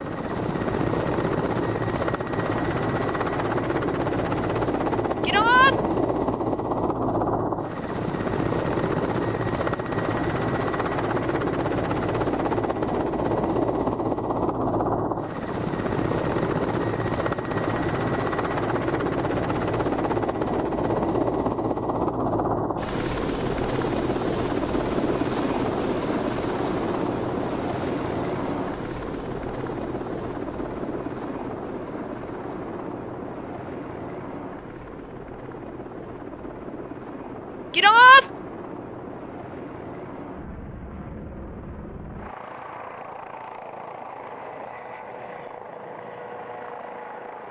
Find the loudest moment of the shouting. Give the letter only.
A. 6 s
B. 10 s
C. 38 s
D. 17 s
C.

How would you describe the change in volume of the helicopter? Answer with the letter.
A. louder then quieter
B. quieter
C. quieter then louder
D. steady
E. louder
B.